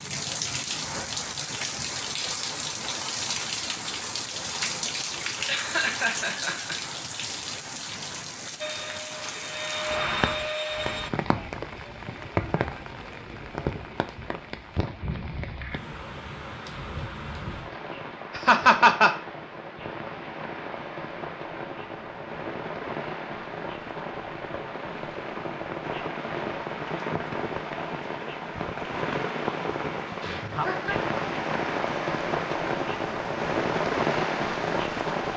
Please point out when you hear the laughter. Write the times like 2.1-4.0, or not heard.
5.5-6.8, 18.4-19.1, 30.2-30.9.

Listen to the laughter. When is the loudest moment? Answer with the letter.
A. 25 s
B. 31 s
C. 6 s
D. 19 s
D.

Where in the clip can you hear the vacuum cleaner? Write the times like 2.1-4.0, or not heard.
8.6-11.1.